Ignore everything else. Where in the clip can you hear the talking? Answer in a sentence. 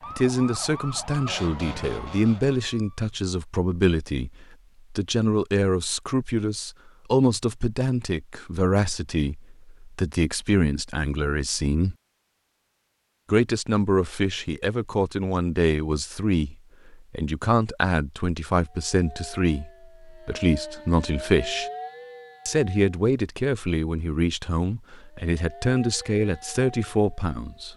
The talking can be heard from 0.1 to 11.9 s, from 13.2 to 21.6 s and from 22.4 to 27.7 s.